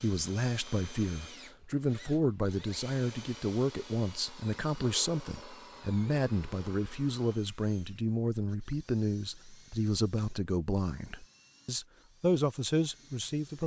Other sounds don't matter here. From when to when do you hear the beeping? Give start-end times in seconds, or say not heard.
not heard.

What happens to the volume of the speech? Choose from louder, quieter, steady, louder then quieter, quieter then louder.
steady.